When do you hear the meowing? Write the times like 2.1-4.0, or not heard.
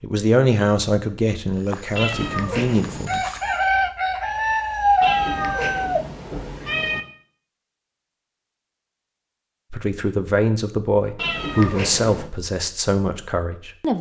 1.9-3.1, 5.0-7.0, 11.2-12.3.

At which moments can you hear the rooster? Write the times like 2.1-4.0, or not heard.
3.0-6.0.